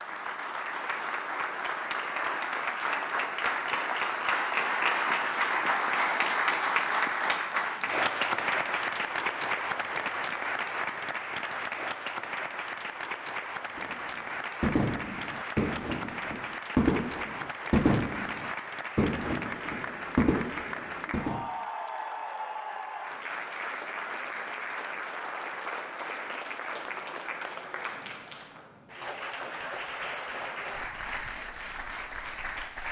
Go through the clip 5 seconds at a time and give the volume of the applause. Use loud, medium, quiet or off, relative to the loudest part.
loud, loud, medium, medium, medium, medium, medium.